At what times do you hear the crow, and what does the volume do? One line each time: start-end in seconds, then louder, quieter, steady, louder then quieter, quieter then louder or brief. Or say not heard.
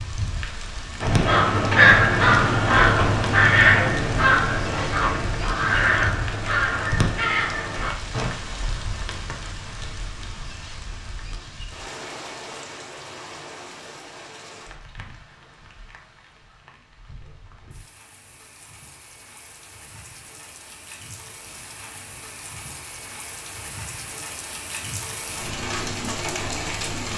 1.0-8.3 quieter.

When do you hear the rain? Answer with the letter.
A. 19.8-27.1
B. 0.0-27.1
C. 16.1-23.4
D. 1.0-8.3
B.